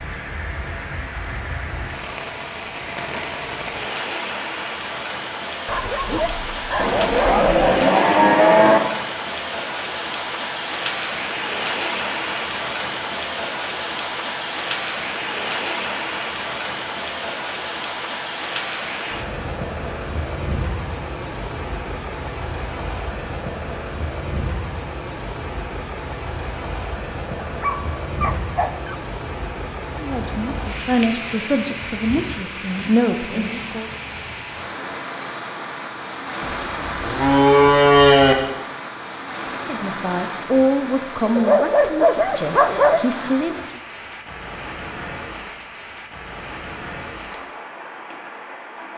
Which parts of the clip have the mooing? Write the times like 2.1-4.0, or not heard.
6.8-8.8, 36.4-38.4.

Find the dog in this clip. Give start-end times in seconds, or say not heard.
5.7-7.7, 27.4-29.0, 41.4-43.0.